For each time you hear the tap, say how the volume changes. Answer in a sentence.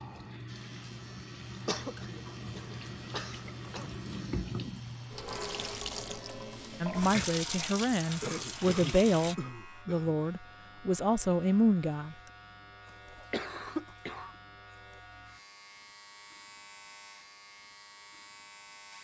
The tap can be heard from 0.0 to 9.3 s, getting louder.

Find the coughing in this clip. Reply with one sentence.
You can hear the coughing from 1.6 to 4.0 s, from 8.2 to 10.2 s and from 13.2 to 14.3 s.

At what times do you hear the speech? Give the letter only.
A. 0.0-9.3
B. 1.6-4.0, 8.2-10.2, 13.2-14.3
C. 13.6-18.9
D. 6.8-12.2
D.